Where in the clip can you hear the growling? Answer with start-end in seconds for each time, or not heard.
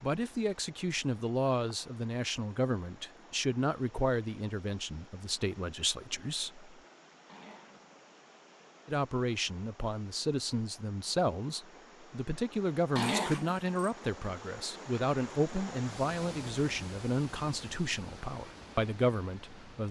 7.2-8.0, 12.9-13.7.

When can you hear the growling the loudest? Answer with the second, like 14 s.
13 s.